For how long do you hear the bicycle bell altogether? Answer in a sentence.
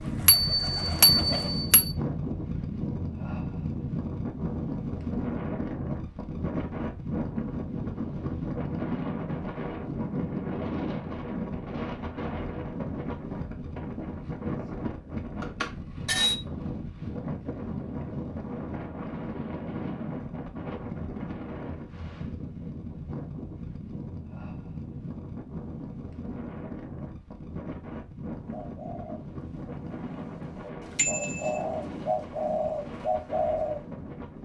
The bicycle bell can be heard for 3 seconds in total.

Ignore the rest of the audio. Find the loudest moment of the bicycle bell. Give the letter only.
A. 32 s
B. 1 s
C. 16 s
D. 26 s
B.